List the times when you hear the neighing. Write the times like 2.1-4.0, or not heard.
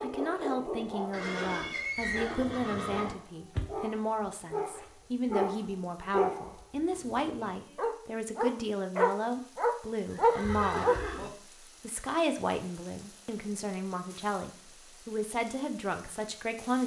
1.1-3.1, 10.1-11.3.